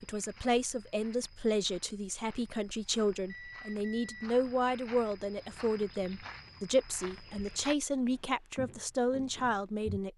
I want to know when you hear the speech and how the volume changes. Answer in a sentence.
The speech can be heard from 0.0 to 10.1 s, at a steady volume.